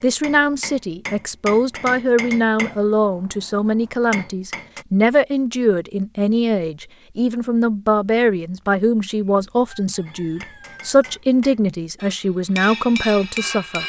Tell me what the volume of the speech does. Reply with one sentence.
The loudness of the speech stays about the same.